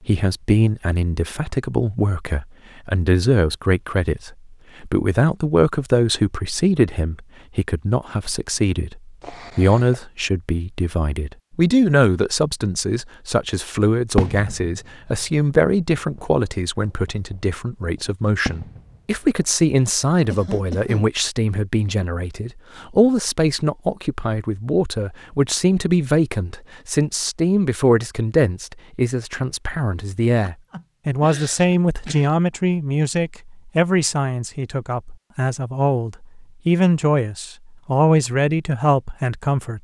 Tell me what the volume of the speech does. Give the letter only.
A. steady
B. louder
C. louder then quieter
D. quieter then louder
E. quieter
A.